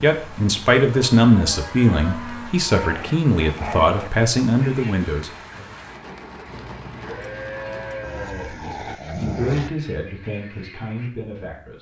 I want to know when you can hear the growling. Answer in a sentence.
You can hear the growling from 2.8 to 4.1 s and from 8.0 to 9.7 s.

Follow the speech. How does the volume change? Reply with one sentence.
The loudness of the speech goes down.